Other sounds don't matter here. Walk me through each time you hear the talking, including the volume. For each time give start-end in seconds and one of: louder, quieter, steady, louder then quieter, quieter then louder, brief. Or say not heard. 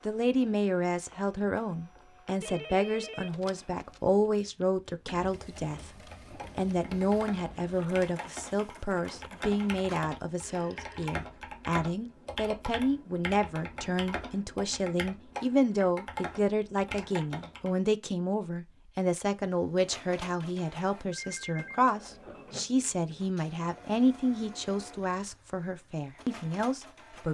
0.1-27.2 steady.